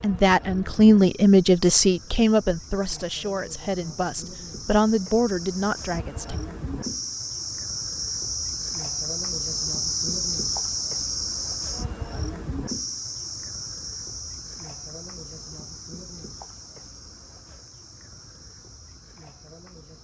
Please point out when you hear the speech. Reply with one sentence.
The speech can be heard from 0.0 to 6.4 s.